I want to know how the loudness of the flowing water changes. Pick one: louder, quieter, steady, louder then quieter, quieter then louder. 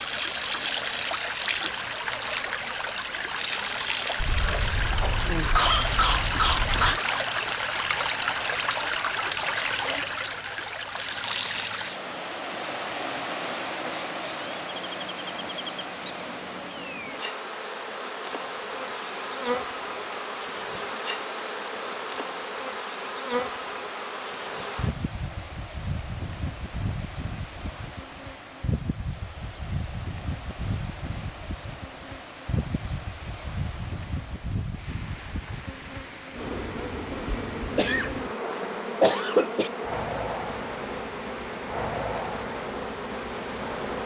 quieter.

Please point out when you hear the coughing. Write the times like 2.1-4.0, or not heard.
4.2-7.0, 37.8-39.7.